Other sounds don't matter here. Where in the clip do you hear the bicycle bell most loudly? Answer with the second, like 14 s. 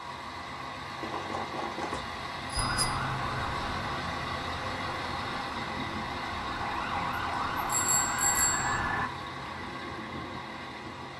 8 s.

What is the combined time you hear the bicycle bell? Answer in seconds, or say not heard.
3 s.